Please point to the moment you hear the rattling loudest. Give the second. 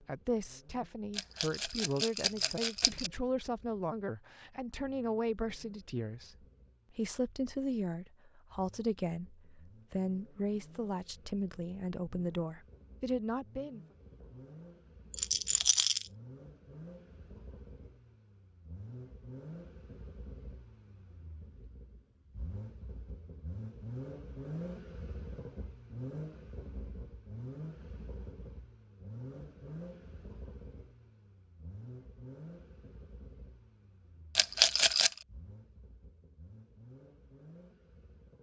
35 s.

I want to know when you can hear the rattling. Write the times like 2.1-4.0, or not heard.
1.1-3.1, 15.1-16.1, 34.4-35.1.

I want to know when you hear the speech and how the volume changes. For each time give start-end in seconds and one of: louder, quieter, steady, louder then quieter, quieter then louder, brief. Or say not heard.
0.0-13.8 steady.